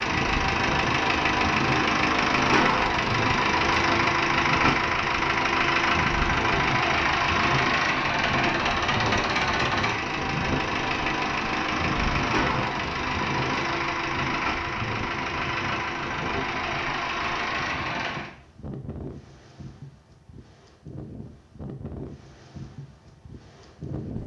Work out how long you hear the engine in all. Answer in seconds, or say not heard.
18 s.